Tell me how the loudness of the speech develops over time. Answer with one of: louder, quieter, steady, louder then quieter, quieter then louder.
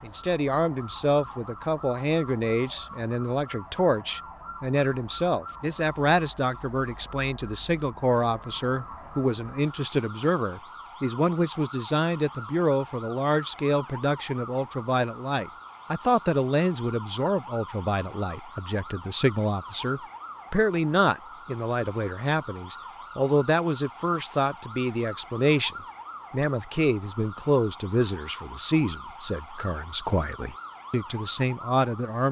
steady.